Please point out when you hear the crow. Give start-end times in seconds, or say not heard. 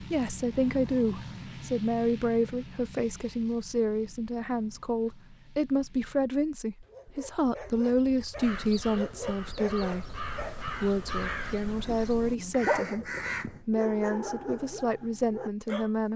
8.4-13.7.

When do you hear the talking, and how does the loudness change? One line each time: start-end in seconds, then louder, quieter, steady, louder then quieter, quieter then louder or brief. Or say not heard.
0.0-16.1 steady.